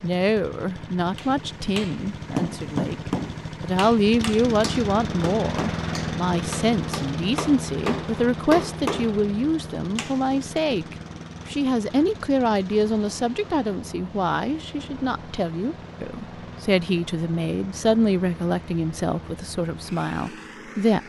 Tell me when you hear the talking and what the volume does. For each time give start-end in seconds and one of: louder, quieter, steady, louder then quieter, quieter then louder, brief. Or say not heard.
0.0-21.0 steady.